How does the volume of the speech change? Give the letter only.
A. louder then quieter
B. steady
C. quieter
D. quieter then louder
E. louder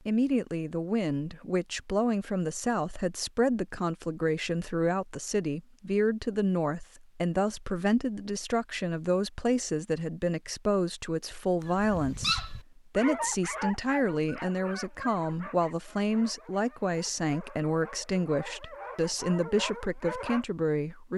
B.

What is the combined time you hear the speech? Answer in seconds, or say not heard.
21 s.